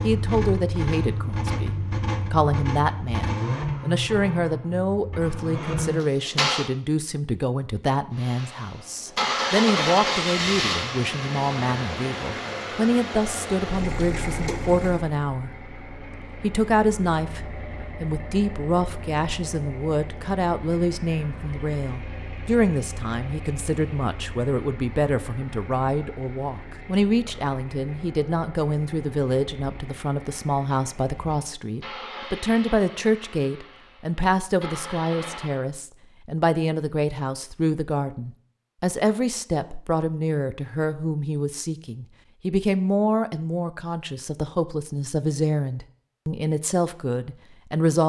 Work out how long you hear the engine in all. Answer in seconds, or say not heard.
34 s.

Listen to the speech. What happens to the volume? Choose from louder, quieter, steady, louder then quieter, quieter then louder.
steady.